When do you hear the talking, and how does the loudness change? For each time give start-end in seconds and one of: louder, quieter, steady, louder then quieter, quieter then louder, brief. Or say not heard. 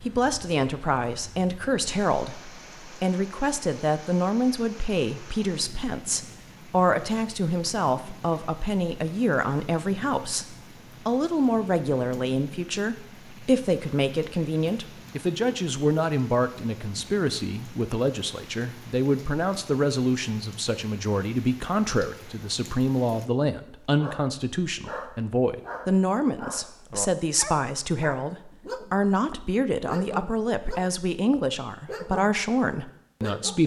0.0-33.6 steady.